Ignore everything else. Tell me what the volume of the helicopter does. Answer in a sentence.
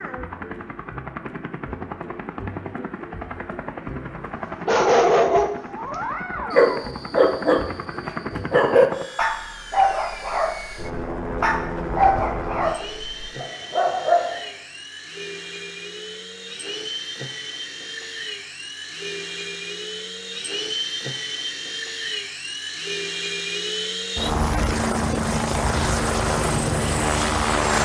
The loudness of the helicopter goes up.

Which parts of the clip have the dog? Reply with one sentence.
You can hear the dog from 4.7 to 5.5 s and from 6.5 to 14.4 s.